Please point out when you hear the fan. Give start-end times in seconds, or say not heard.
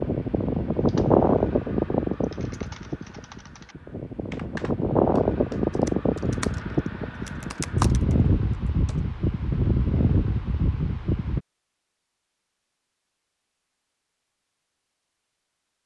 0.0-11.4.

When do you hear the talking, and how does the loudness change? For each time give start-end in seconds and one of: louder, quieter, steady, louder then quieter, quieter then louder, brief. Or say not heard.
not heard.